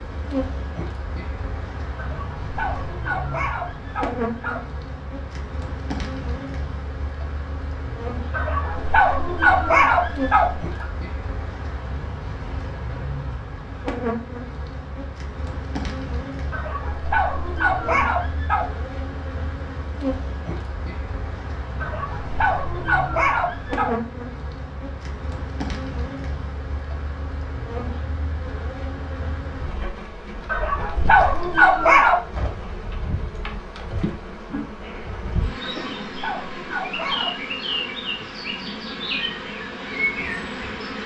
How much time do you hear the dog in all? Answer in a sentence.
The dog can be heard for 13 seconds in total.